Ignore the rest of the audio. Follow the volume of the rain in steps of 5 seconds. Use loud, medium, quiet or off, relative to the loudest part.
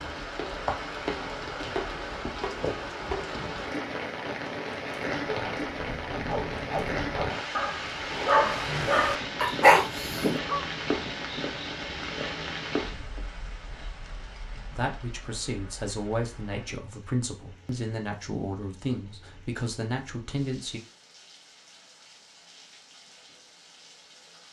loud, loud, loud, quiet, quiet.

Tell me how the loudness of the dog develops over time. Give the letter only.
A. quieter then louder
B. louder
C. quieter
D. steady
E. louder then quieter
B.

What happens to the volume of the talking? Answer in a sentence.
The loudness of the talking stays about the same.